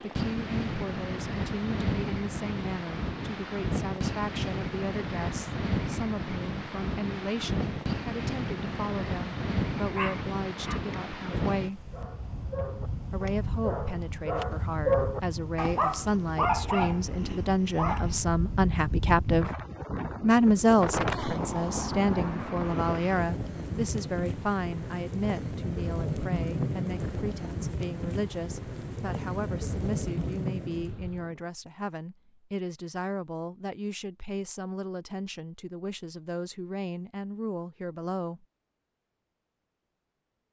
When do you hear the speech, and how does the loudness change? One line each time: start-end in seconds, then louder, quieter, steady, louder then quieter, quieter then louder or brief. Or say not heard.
0.0-11.9 steady
13.1-19.5 louder
20.2-38.5 quieter.